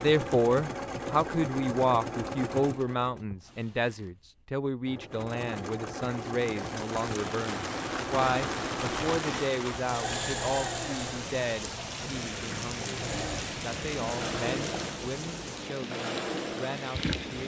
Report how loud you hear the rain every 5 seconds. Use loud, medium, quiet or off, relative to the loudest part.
off, loud, loud, loud.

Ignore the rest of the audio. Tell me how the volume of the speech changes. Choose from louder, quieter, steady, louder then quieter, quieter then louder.
quieter.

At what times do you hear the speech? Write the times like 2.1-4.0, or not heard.
0.0-17.4.